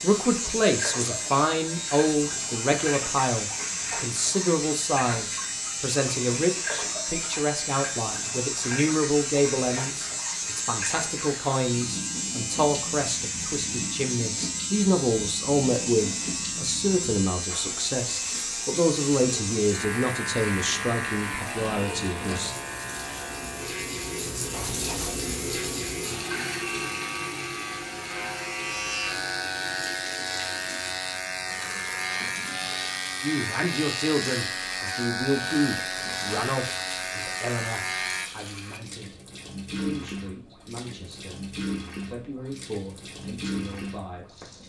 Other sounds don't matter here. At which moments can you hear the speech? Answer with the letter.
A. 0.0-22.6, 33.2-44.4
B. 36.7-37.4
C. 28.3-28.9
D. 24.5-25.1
A.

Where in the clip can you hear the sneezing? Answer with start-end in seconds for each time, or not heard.
not heard.